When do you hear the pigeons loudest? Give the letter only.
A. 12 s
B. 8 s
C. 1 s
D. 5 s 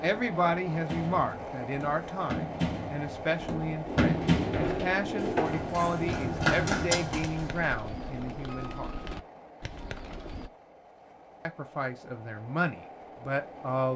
D.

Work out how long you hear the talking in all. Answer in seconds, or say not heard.
11 s.